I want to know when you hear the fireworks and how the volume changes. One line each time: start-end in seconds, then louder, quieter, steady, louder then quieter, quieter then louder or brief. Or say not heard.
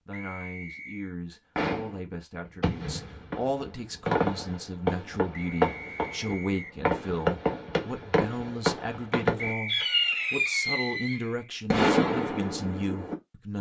1.6-13.2 louder.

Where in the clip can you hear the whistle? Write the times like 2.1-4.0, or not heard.
0.1-1.1, 5.3-6.8, 9.3-10.2.